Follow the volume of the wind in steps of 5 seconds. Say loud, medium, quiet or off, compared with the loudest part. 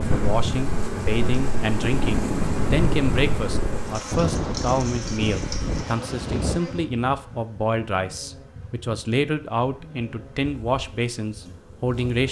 loud, loud, off.